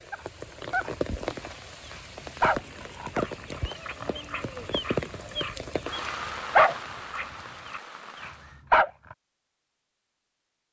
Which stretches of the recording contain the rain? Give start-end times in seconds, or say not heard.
0.0-8.6.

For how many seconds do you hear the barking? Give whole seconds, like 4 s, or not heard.
9 s.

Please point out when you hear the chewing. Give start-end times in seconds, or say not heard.
not heard.